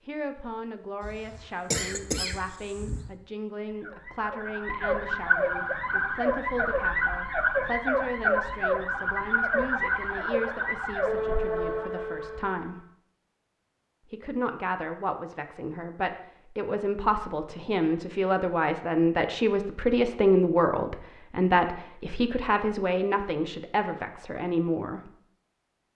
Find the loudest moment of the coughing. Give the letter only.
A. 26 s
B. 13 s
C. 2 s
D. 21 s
C.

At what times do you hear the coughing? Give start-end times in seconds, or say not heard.
1.0-3.1.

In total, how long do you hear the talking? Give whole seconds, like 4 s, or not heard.
24 s.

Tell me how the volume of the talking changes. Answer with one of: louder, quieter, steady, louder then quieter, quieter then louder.
louder.